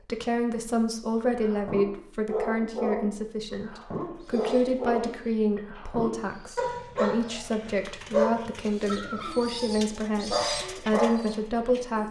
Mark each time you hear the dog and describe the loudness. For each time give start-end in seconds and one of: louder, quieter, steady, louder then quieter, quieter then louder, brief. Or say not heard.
1.3-11.6 steady.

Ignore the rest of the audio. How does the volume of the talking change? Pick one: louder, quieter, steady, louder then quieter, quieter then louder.
steady.